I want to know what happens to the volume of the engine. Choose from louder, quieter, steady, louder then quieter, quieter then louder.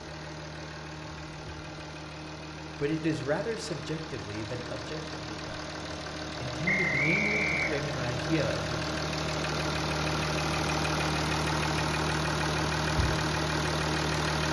louder.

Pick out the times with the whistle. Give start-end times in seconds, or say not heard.
6.7-7.8.